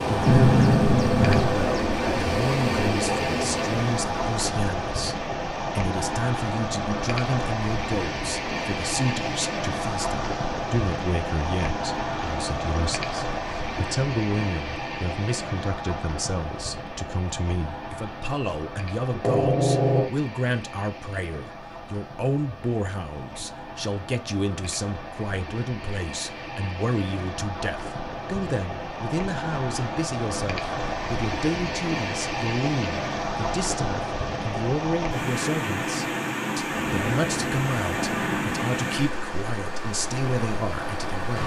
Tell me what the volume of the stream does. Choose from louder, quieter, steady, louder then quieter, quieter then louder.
quieter then louder.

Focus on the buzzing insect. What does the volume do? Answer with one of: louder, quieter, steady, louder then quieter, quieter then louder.
steady.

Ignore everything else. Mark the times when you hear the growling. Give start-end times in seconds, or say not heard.
0.2-1.6, 19.1-20.1, 36.7-38.6.